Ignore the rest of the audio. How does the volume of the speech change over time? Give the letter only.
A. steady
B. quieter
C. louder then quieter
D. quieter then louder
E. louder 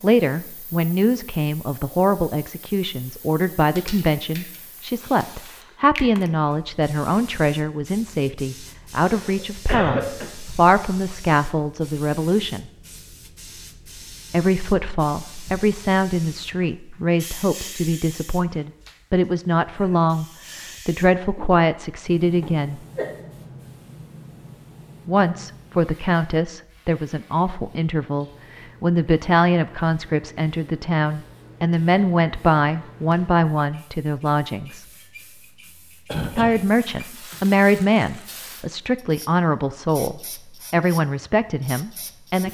A.